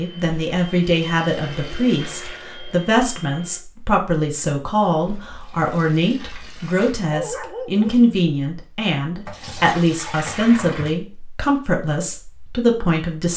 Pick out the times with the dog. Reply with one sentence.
The dog can be heard from 6.5 to 8.0 s.